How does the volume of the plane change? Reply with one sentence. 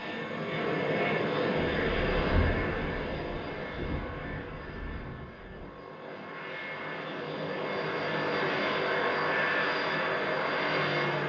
The loudness of the plane goes down, then up.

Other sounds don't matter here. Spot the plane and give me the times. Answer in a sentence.
The plane can be heard from 0.0 to 11.2 s.